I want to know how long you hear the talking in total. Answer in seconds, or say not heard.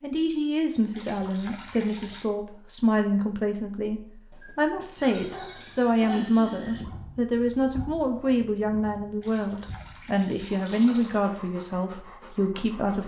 13 s.